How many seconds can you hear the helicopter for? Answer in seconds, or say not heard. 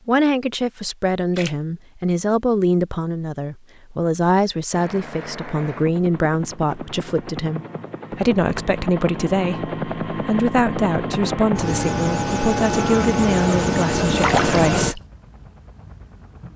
12 s.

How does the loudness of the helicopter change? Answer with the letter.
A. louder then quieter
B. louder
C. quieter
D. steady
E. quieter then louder
B.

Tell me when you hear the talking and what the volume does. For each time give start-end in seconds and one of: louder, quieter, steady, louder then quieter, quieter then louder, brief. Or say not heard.
0.1-15.0 steady.